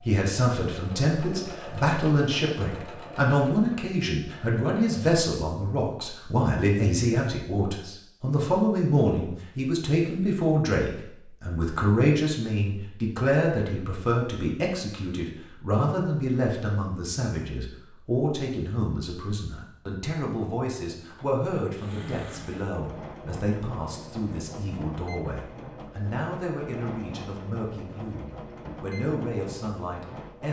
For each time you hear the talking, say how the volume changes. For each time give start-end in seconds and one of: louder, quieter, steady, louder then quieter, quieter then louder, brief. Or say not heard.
0.0-30.4 quieter.